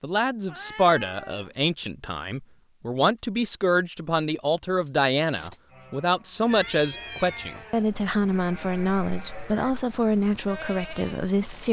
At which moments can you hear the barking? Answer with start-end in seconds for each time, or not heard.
not heard.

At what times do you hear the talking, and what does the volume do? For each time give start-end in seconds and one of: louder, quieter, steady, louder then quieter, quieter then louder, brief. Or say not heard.
0.0-11.6 steady.